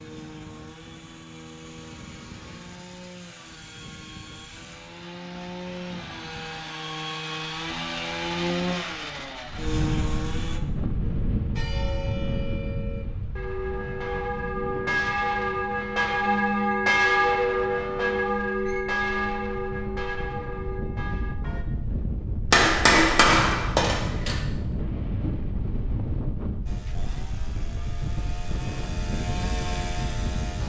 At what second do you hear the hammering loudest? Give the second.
23 s.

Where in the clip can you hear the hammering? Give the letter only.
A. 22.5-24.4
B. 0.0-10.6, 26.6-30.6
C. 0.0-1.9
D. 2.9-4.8
A.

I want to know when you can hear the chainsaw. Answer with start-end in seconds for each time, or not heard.
0.0-10.6, 26.6-30.6.